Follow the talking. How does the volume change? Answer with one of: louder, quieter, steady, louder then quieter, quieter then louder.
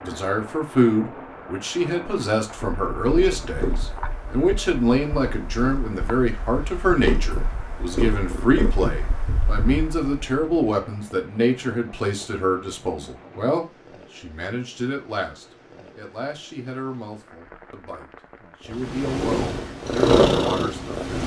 quieter.